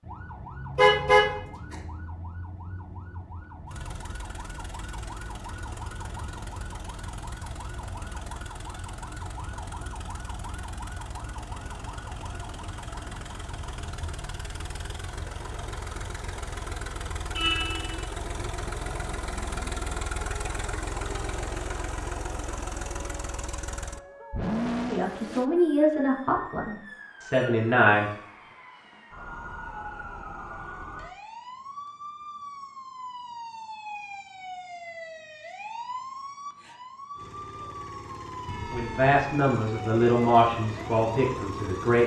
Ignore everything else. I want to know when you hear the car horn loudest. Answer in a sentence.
The volume of the car horn peaks at 1 second.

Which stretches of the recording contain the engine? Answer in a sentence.
You can hear the engine from 3.6 to 25.4 s and from 37.1 to 42.0 s.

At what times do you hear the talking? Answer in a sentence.
The talking can be heard from 24.9 to 28.1 s and from 38.7 to 42.0 s.